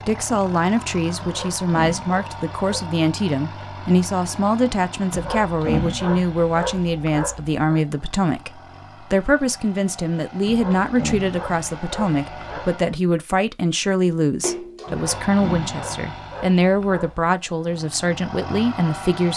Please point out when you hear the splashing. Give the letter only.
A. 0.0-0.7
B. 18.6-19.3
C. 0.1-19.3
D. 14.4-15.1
D.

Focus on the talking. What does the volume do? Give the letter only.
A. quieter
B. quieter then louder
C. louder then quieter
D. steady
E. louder
D.